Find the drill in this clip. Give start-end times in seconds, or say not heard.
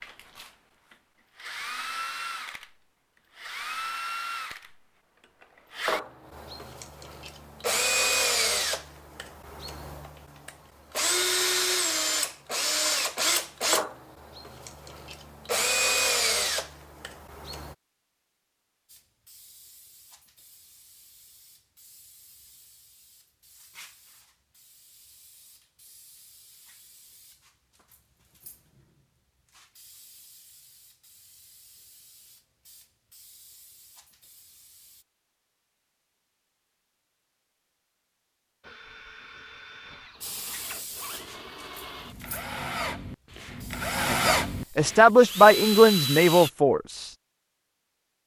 0.0-17.8, 38.6-46.5.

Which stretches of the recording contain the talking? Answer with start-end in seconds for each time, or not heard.
44.0-47.1.